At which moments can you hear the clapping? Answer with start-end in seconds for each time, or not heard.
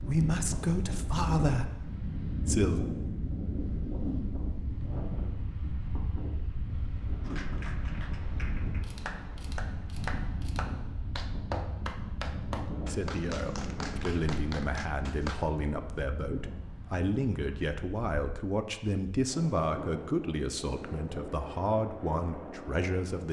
7.2-15.4.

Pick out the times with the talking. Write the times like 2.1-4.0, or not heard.
0.0-2.8, 12.8-23.2.